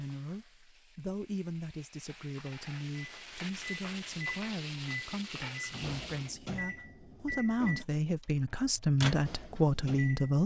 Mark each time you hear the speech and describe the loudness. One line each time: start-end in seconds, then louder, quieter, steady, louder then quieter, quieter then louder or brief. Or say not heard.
0.0-10.4 louder.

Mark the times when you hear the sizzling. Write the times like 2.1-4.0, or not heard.
0.0-6.3.